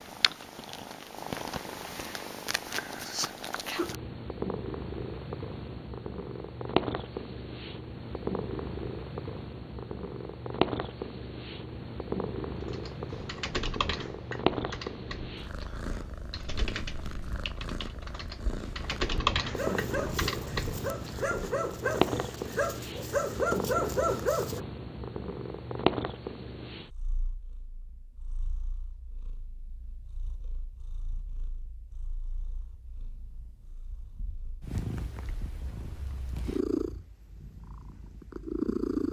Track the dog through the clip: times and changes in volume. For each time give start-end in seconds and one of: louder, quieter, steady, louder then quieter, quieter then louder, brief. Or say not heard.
19.6-24.6 louder.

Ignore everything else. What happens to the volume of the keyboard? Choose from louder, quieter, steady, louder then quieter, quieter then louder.
quieter then louder.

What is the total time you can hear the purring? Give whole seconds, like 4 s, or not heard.
39 s.